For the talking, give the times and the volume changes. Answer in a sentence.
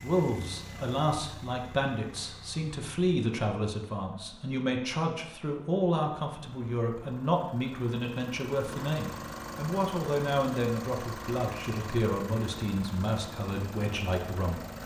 You can hear the talking from 0.0 to 14.7 s, at a steady volume.